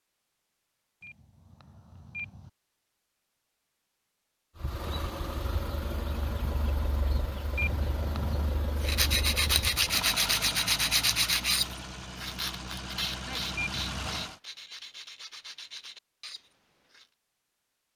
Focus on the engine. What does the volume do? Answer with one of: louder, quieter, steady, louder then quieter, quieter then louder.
steady.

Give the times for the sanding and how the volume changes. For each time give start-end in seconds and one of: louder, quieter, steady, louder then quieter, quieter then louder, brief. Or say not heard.
8.8-17.1 quieter.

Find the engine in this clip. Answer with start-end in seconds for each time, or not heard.
4.5-14.4.